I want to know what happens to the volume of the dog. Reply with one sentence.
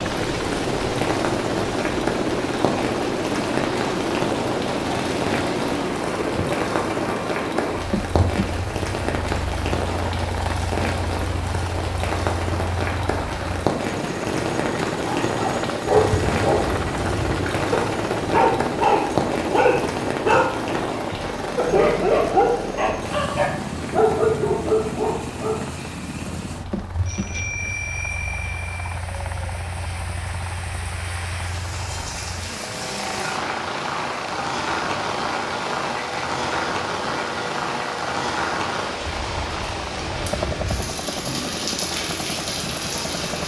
The volume of the dog stays about the same.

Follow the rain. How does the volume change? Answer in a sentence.
The loudness of the rain goes down, then up.